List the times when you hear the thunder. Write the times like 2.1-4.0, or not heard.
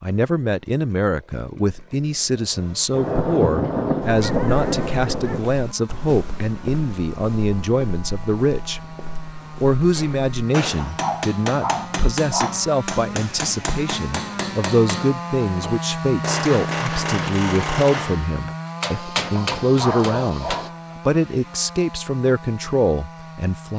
2.9-5.5.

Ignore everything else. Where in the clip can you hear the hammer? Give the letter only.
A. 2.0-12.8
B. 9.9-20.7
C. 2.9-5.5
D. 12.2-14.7
B.